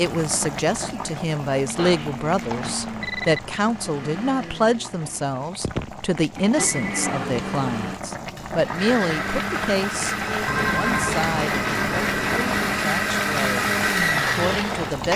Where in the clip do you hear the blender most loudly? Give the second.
14 s.